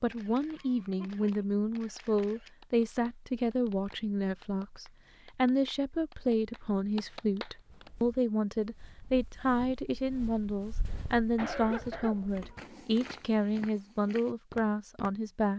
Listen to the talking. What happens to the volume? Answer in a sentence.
The loudness of the talking stays about the same.